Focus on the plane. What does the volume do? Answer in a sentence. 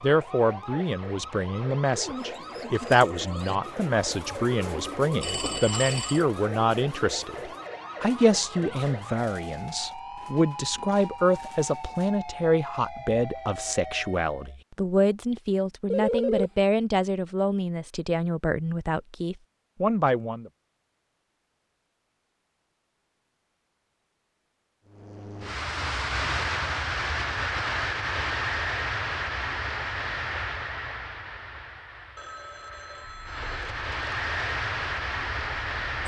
The volume of the plane goes down, then up.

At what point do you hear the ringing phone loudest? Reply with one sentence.
The volume of the ringing phone peaks at 16 seconds.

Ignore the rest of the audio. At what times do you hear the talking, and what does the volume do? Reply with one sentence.
The talking can be heard from 0.0 to 20.5 s, at a steady volume.